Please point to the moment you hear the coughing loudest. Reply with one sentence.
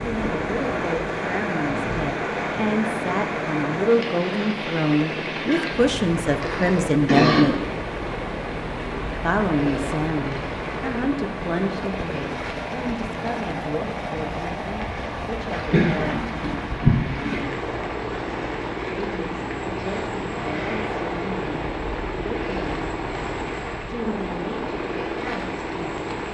The volume of the coughing peaks at 7 seconds.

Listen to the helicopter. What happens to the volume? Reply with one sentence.
The loudness of the helicopter stays about the same.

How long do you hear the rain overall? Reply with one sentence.
You can hear the rain for 26 seconds altogether.